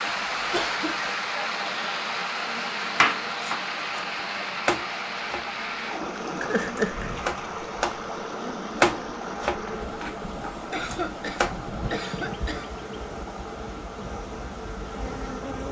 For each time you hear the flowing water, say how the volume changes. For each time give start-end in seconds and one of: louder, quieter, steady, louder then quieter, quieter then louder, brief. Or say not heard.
0.0-15.6 quieter.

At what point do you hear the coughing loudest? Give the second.
7 s.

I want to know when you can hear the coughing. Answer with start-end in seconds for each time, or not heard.
0.5-1.1, 6.4-7.2, 10.7-12.7.